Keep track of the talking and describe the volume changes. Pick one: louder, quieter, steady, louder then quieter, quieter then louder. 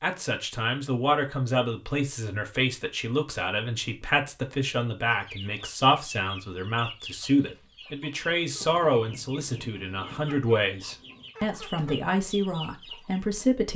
steady.